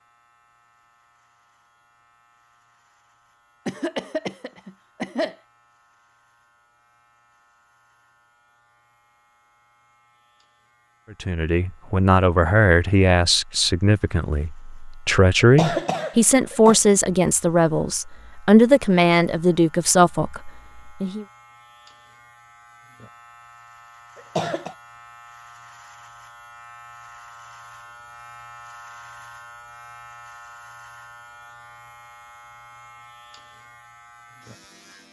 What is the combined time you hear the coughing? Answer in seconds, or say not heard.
4 s.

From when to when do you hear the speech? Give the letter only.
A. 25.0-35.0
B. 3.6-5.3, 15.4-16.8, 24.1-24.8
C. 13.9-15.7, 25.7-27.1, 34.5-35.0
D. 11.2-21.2
D.